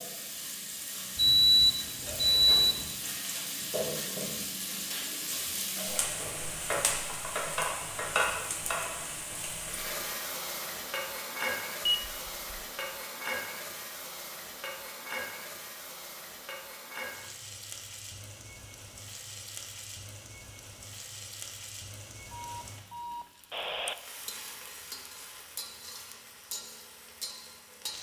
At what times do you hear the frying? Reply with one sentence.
The frying can be heard from 0.0 to 27.9 s.